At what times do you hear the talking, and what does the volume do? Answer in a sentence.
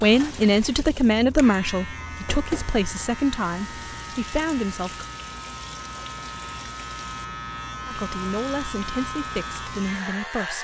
The talking can be heard from 0.0 to 5.0 s, getting quieter; and briefly from 7.8 to 10.5 s.